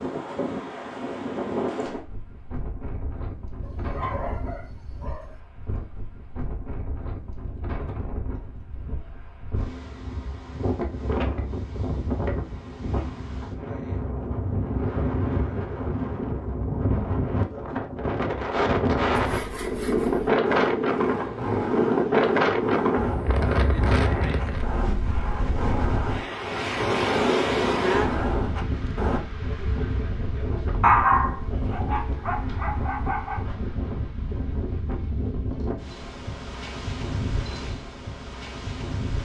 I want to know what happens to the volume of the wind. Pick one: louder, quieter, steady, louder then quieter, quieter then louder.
louder then quieter.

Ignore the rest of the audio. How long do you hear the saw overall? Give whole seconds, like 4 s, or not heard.
10 s.